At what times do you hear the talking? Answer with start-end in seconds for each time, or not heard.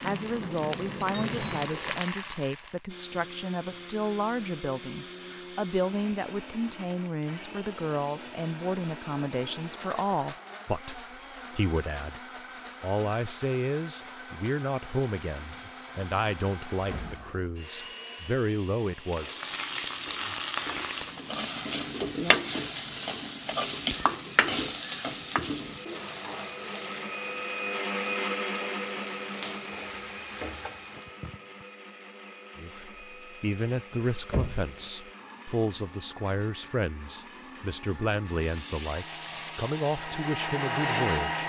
0.0-12.2, 12.8-19.4, 32.5-41.4.